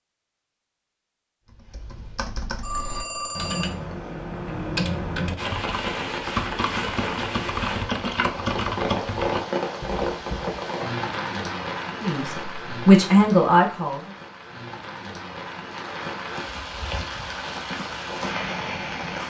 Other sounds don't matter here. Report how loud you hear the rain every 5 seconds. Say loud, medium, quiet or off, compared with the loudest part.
off, loud, loud, loud.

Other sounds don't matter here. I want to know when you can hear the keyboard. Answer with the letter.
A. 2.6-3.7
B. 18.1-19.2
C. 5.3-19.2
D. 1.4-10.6
D.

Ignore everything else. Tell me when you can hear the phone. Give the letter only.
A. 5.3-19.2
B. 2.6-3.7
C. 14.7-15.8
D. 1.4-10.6
B.